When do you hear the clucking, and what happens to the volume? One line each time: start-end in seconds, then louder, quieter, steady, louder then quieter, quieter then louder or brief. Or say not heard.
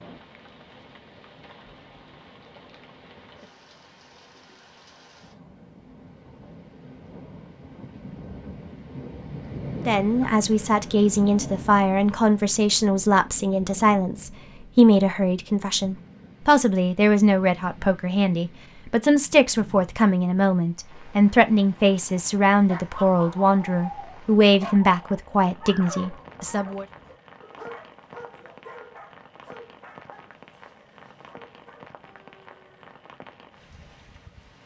not heard.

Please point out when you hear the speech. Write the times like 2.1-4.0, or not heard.
9.8-26.9.